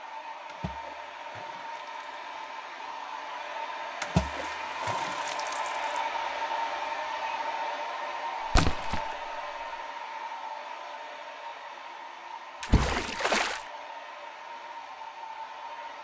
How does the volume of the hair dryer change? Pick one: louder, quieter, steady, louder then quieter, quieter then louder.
louder then quieter.